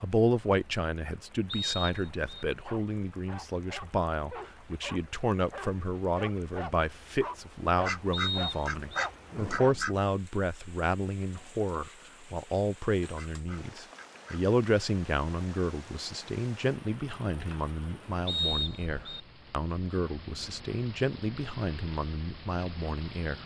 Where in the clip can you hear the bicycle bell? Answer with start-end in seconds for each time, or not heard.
not heard.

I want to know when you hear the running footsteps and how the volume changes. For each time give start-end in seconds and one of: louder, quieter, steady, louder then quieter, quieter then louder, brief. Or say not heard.
not heard.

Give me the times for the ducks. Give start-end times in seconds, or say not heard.
7.8-9.9, 13.2-14.4.